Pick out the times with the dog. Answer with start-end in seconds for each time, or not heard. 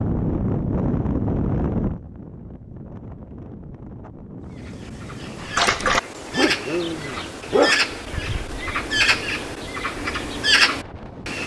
5.4-8.6.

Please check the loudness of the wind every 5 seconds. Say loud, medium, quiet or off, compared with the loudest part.
loud, quiet, quiet.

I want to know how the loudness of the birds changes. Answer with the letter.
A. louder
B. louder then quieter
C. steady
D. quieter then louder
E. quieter
A.